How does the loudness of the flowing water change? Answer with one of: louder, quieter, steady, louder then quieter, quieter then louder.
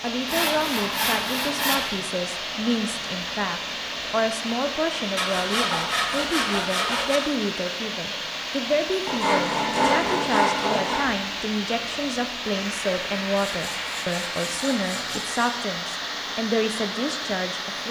steady.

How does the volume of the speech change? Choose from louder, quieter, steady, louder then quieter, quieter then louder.
steady.